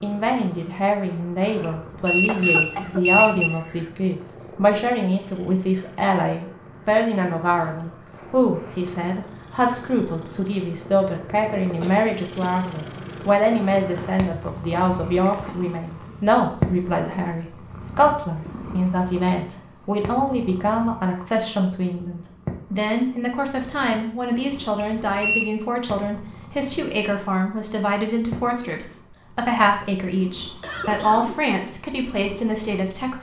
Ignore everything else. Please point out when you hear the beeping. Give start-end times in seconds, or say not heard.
1.6-3.5, 24.8-25.4.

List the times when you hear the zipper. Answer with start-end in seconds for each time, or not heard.
not heard.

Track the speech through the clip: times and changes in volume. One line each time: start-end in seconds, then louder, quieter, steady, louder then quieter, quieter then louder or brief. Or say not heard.
0.0-33.1 steady.